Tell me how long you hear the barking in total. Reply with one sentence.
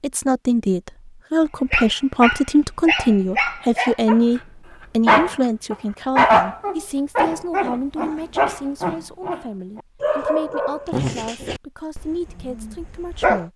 You can hear the barking for 11 seconds altogether.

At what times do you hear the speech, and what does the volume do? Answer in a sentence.
The speech can be heard from 0.0 to 13.5 s, getting quieter.